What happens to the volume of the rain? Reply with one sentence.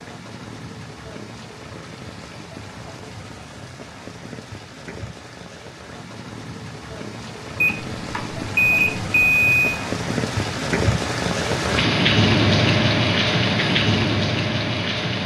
The volume of the rain goes up.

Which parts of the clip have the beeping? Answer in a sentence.
The beeping can be heard from 7.6 to 9.8 s.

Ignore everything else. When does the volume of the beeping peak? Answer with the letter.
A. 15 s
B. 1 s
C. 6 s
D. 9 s
D.